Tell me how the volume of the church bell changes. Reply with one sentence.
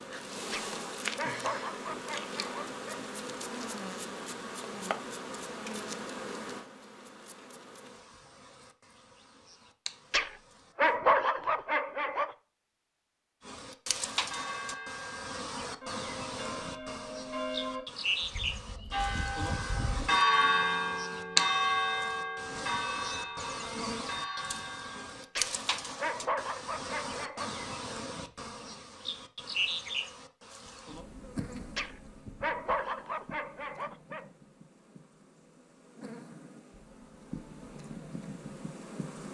The volume of the church bell goes up, then down.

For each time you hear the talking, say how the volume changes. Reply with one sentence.
You can't hear the talking here.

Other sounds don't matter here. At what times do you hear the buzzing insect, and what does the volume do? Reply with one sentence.
You can hear the buzzing insect from 0.0 to 10.9 s, getting quieter; and from 13.4 to 39.2 s, getting quieter.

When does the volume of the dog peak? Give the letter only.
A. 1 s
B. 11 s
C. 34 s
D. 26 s
B.